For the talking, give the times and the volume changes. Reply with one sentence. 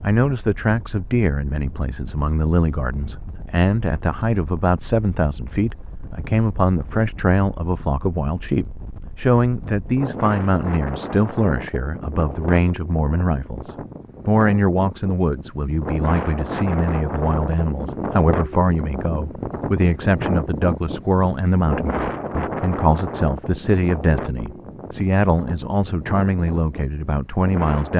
The talking can be heard from 0.0 to 27.9 s, at a steady volume.